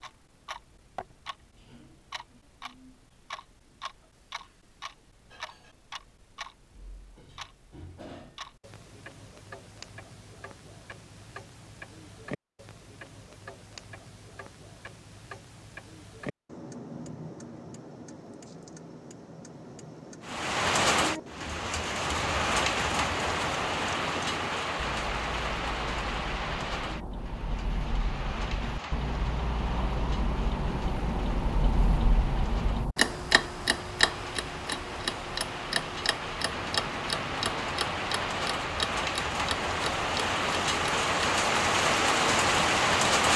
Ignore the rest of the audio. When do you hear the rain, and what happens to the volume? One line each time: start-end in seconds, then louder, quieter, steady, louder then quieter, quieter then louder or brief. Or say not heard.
20.2-43.3 quieter then louder.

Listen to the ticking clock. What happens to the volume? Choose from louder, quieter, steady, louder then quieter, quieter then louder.
louder.